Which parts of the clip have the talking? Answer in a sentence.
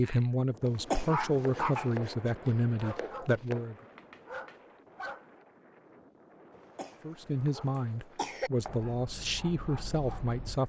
You can hear the talking from 0.0 to 3.8 s and from 7.0 to 10.6 s.